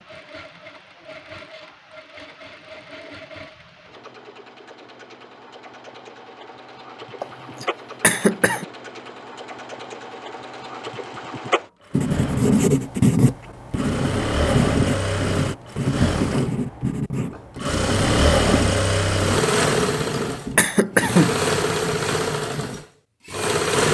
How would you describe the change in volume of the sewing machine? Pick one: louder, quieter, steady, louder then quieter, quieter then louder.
louder.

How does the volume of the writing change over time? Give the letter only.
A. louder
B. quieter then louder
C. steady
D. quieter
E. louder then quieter
D.